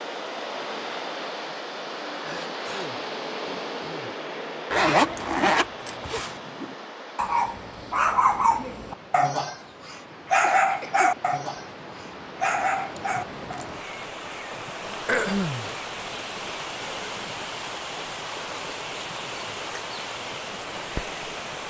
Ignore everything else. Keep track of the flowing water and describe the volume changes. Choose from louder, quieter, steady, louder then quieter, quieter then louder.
quieter then louder.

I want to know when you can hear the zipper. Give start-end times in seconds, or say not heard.
4.7-6.3, 12.9-13.8.